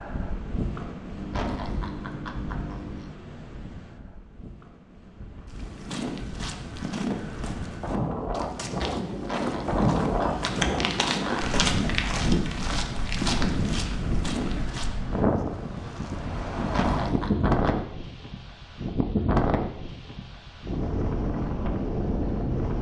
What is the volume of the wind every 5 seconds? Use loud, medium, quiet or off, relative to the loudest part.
medium, loud, loud, loud, loud.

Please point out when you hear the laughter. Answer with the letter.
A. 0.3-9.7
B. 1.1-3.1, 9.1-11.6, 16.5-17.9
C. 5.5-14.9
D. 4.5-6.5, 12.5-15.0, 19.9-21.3
B.